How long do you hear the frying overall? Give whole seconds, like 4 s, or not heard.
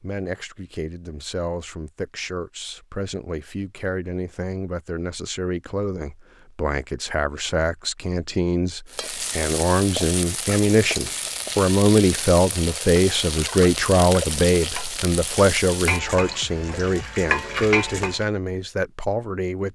9 s.